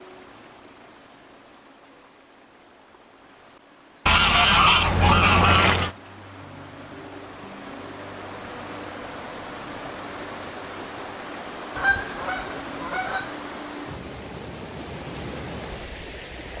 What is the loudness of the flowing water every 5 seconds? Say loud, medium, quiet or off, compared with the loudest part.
quiet, loud, loud, loud.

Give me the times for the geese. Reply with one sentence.
The geese can be heard from 4.0 to 6.0 s and from 11.8 to 13.3 s.